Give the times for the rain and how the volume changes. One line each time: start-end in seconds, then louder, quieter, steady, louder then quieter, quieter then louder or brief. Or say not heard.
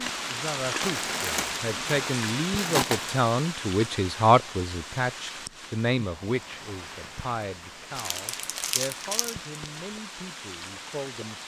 0.0-11.4 quieter.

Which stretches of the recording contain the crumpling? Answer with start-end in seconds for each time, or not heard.
0.8-3.2, 8.0-9.3.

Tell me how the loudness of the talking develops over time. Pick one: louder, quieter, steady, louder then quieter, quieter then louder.
louder then quieter.